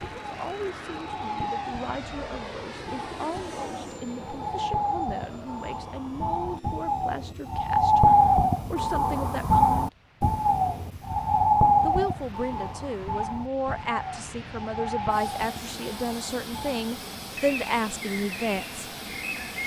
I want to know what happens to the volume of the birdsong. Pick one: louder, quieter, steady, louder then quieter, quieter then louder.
louder then quieter.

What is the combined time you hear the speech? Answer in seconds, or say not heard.
17 s.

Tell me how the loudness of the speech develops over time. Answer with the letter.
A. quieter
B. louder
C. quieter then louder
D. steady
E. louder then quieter
B.